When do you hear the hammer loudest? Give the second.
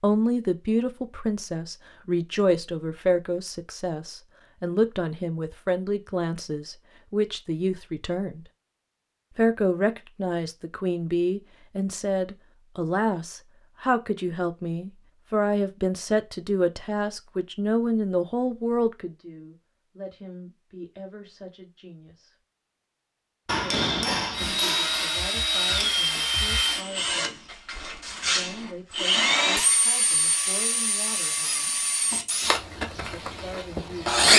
24 s.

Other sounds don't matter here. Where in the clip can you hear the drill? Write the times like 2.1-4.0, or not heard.
24.3-34.3.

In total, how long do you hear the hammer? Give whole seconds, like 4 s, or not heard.
2 s.